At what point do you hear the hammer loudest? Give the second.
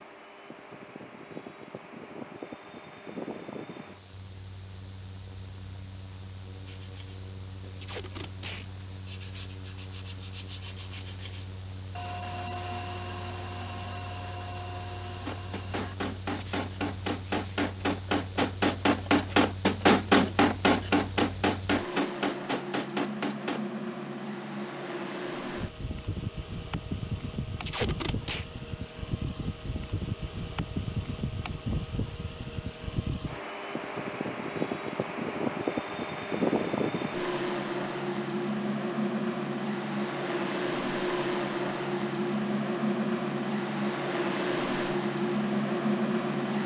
20 s.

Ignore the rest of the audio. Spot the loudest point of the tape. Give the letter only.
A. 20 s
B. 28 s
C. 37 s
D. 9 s
B.